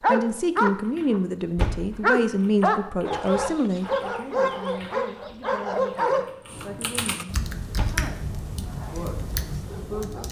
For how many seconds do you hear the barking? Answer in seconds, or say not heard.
7 s.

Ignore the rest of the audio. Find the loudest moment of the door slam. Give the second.
2 s.